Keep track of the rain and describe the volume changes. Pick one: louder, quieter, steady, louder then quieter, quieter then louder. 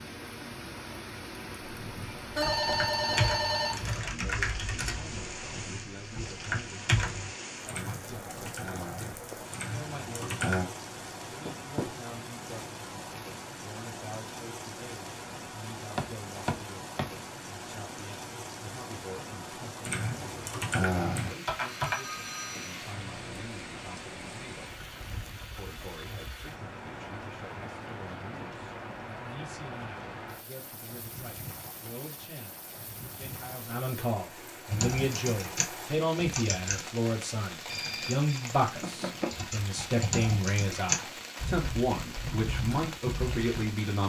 steady.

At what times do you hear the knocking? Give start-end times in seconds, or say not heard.
11.4-11.9, 15.9-17.1, 38.6-39.4.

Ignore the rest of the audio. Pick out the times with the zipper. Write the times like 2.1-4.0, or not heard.
not heard.